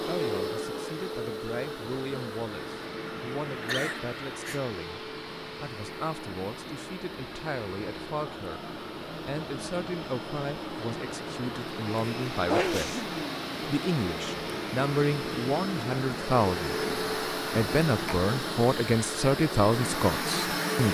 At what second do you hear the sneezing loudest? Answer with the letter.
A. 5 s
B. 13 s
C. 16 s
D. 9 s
B.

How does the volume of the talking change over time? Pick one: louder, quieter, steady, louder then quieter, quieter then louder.
louder.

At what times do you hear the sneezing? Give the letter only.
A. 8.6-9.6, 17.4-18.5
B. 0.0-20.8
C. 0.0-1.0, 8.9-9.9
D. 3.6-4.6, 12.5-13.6
D.